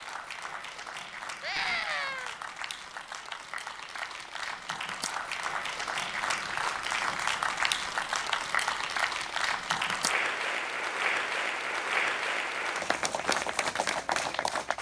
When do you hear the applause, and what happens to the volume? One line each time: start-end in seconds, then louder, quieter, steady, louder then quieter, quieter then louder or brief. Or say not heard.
0.0-14.7 louder.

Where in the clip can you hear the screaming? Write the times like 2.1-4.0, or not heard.
1.4-2.4.